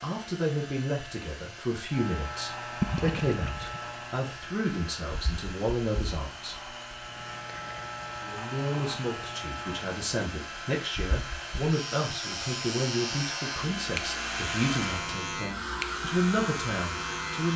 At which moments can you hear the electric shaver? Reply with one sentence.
The electric shaver can be heard from 1.9 to 17.5 s.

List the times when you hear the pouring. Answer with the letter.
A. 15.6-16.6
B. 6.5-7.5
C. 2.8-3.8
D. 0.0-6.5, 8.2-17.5
C.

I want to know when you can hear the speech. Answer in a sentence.
The speech can be heard from 0.0 to 6.5 s and from 8.2 to 17.5 s.